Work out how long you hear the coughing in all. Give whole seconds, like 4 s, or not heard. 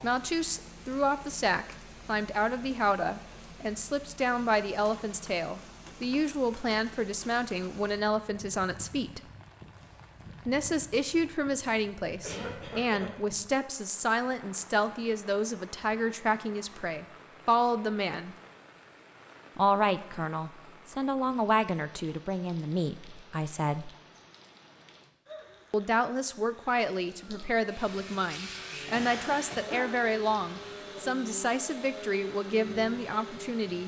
2 s.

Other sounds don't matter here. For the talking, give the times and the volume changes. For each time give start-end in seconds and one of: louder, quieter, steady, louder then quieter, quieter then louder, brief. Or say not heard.
0.0-9.2 steady
10.4-18.4 steady
19.6-23.9 louder then quieter
25.7-33.8 steady.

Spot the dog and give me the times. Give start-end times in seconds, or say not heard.
not heard.